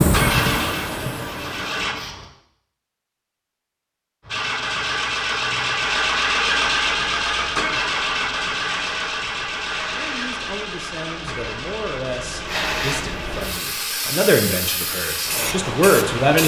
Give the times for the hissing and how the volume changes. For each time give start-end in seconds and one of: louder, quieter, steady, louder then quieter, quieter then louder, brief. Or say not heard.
0.0-2.2 brief
4.2-16.4 louder.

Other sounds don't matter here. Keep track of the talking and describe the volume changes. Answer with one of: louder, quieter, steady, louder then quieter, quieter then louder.
louder.